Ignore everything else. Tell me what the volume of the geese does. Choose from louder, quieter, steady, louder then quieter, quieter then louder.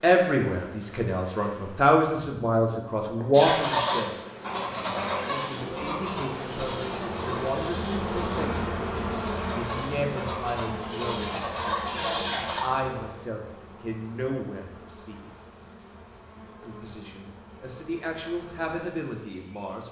quieter then louder.